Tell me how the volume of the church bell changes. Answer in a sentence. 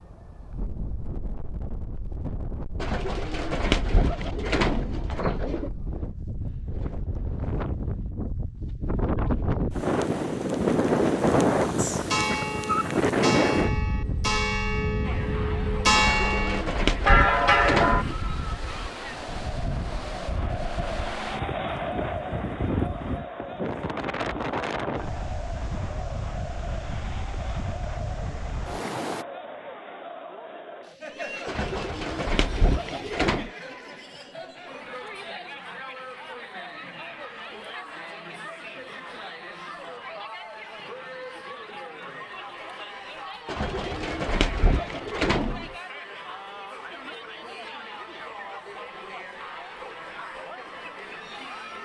The volume of the church bell goes up.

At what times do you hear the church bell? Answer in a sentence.
The church bell can be heard from 11.8 to 18.1 s.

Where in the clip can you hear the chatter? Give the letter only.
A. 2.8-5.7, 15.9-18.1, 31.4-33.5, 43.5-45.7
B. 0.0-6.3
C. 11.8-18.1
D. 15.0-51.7
D.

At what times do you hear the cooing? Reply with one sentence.
You can hear the cooing from 2.8 to 5.7 s, from 15.9 to 18.1 s, from 31.4 to 33.5 s and from 43.5 to 45.7 s.